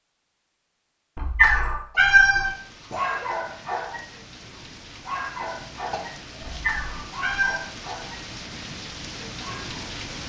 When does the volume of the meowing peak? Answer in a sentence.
The volume of the meowing peaks at 2 seconds.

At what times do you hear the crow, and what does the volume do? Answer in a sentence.
You can't hear the crow here.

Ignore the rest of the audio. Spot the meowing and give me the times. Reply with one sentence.
The meowing can be heard from 1.1 to 3.0 s and from 6.4 to 7.7 s.